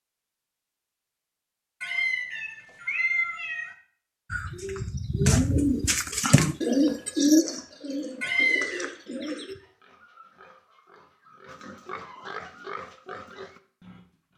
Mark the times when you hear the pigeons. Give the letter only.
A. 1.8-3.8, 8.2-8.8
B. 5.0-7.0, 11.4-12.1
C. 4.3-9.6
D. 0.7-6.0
C.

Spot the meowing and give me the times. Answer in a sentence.
You can hear the meowing from 1.8 to 3.8 s and from 8.2 to 8.8 s.